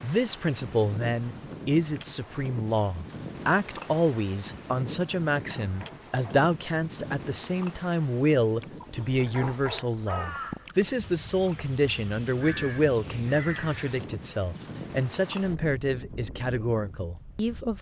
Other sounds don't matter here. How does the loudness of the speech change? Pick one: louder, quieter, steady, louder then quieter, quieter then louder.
steady.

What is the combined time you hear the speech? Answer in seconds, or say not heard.
18 s.